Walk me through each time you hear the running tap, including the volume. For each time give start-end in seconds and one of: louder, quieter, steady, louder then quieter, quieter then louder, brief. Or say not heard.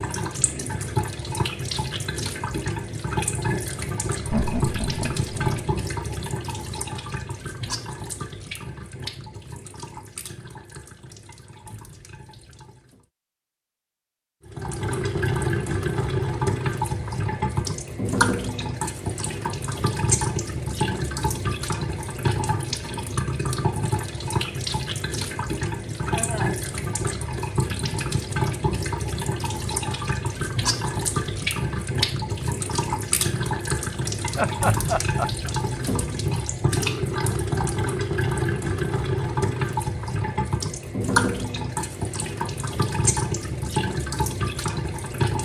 0.0-13.1 quieter
14.4-45.4 steady.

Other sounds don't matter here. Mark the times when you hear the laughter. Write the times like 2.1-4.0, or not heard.
4.2-5.6, 26.0-26.6, 34.4-35.5.